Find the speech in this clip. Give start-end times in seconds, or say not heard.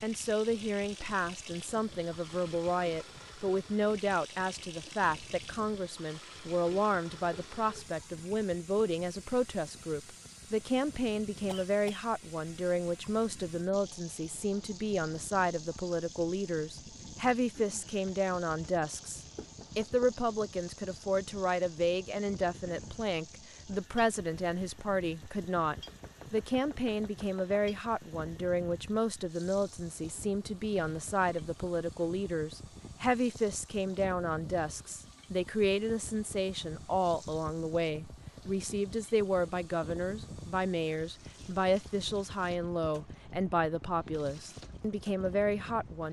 0.0-46.0.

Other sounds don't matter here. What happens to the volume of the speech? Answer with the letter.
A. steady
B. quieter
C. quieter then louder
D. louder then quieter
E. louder
A.